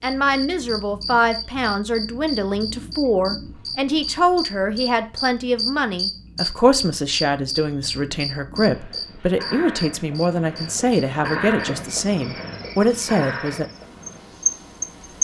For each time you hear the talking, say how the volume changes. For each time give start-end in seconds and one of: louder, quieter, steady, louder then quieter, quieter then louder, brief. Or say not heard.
0.0-13.7 steady.